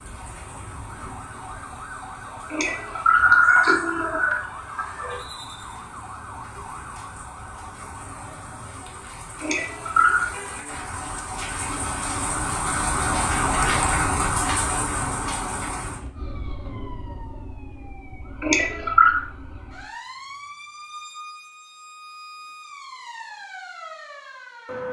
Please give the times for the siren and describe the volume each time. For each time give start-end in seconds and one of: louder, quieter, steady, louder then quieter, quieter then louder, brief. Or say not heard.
0.0-24.8 louder then quieter.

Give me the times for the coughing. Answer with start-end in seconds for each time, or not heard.
2.5-5.2, 9.4-10.2, 18.4-19.2.